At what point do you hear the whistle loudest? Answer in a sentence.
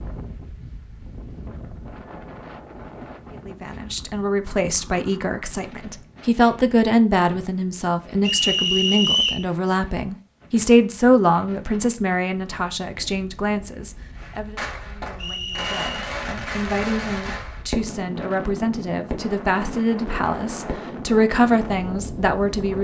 The volume of the whistle peaks at 9 seconds.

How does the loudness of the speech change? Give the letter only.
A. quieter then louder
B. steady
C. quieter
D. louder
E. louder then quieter
A.